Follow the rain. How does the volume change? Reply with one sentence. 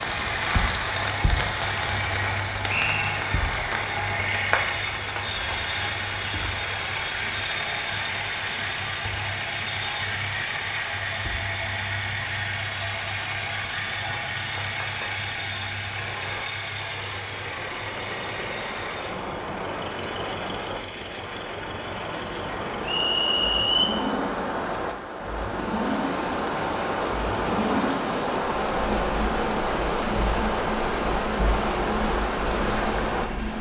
The volume of the rain goes down, then up.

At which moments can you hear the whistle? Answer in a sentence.
You can hear the whistle from 2.6 to 3.2 s and from 22.8 to 23.9 s.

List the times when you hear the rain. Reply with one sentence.
The rain can be heard from 0.0 to 33.5 s.